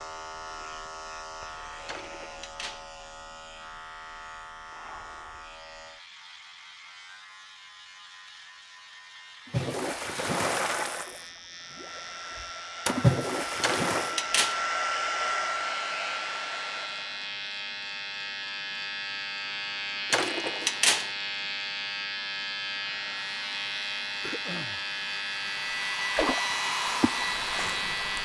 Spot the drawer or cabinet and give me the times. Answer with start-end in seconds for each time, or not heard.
1.9-2.9, 13.6-14.6, 20.1-21.1.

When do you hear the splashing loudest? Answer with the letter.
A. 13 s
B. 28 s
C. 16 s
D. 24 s
A.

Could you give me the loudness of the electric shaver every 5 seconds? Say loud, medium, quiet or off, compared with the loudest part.
medium, quiet, medium, loud, loud, loud.